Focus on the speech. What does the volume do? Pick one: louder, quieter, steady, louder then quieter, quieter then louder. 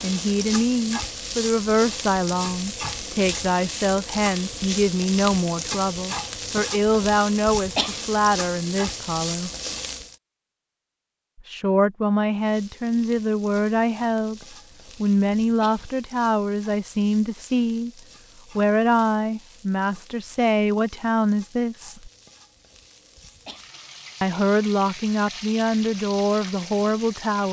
steady.